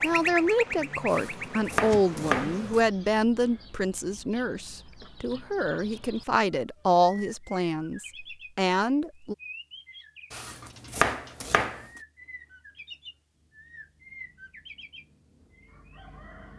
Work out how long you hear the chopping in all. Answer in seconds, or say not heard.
3 s.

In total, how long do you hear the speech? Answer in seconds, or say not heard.
9 s.